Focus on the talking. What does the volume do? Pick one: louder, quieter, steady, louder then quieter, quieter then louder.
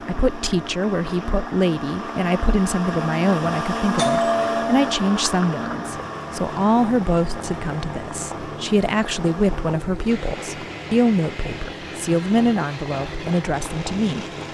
steady.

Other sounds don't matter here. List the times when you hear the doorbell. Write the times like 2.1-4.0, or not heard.
4.0-5.0.